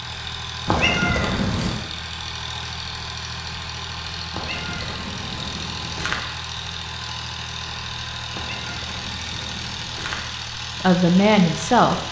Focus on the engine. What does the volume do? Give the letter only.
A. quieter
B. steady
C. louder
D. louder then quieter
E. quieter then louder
B.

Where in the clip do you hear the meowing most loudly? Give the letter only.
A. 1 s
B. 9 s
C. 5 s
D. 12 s
A.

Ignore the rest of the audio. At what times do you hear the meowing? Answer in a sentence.
You can hear the meowing from 0.7 to 1.8 s, from 4.3 to 6.2 s and from 8.3 to 10.2 s.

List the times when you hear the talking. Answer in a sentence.
The talking can be heard from 10.8 to 12.0 s.